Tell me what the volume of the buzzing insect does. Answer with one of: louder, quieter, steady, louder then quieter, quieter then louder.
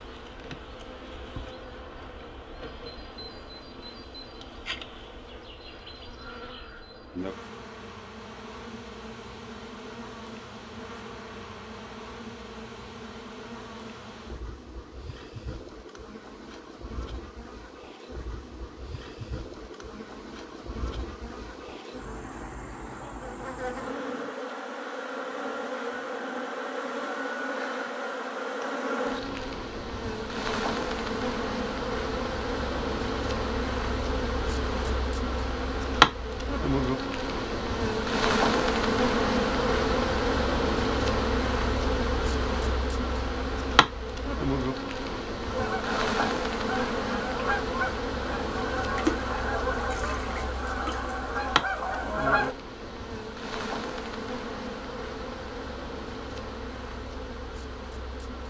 louder then quieter.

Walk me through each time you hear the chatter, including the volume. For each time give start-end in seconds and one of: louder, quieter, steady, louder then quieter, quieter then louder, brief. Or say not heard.
not heard.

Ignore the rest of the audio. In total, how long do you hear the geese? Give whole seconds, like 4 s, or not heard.
7 s.